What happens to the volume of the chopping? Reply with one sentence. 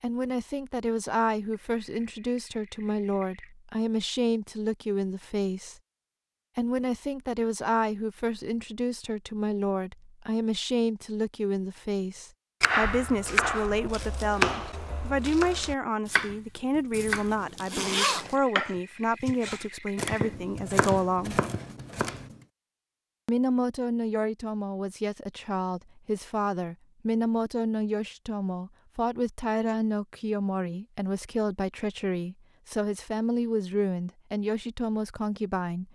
The volume of the chopping goes down.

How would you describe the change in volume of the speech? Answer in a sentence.
The volume of the speech stays about the same.